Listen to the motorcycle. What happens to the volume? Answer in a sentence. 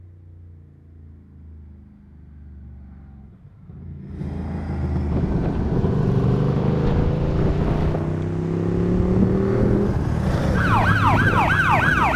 The volume of the motorcycle goes up.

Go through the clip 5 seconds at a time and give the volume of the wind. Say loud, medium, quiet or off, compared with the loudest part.
off, loud, loud.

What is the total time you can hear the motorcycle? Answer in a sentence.
You can hear the motorcycle for 12 seconds altogether.